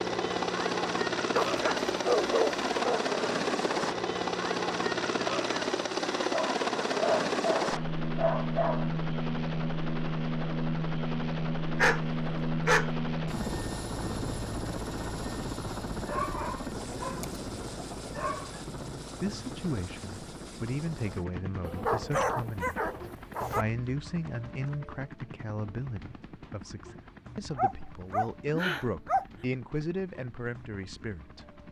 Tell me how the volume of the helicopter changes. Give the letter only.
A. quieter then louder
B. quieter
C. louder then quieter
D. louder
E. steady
B.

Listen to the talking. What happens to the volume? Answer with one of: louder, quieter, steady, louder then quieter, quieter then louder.
steady.